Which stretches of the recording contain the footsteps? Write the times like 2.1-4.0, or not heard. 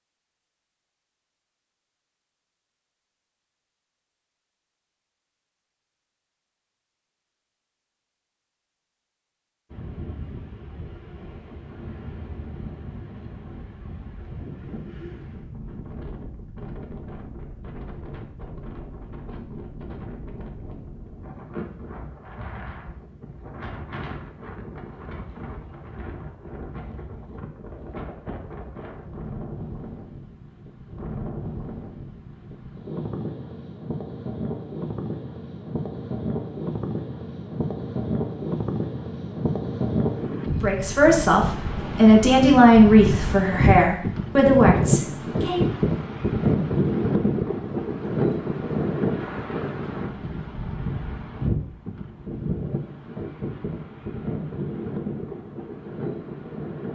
not heard.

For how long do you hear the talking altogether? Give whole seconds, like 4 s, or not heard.
5 s.